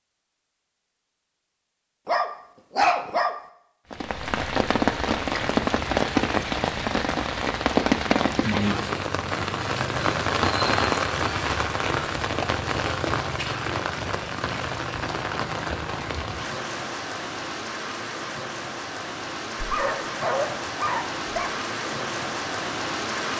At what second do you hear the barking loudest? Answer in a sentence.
The volume of the barking peaks at 3 seconds.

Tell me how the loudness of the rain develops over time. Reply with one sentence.
The volume of the rain goes down.